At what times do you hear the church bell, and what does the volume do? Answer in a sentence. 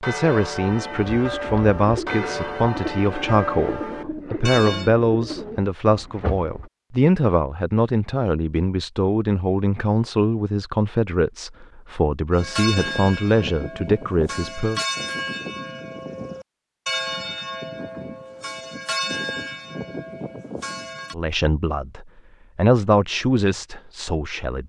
You can hear the church bell from 0.0 to 4.9 s, at a steady volume; and from 12.3 to 21.1 s, at a steady volume.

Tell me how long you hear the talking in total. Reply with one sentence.
The talking can be heard for 18 seconds in total.